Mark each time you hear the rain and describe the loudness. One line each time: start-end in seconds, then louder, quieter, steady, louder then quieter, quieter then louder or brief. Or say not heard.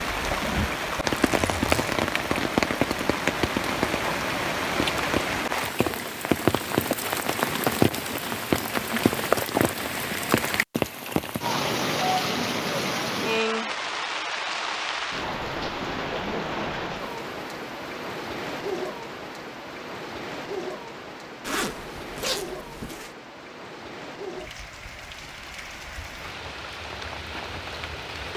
0.0-28.3 quieter.